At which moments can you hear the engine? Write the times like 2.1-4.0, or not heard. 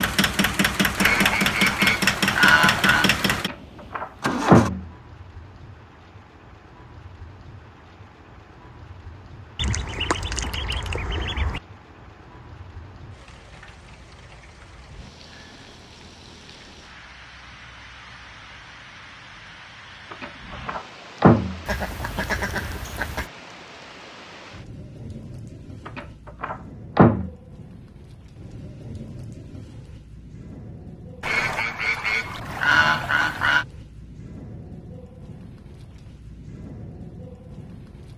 0.0-4.7.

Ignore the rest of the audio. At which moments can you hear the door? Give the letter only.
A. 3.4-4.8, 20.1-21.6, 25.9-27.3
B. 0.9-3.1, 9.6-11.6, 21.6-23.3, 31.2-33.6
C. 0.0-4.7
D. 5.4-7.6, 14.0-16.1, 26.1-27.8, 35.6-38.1
A.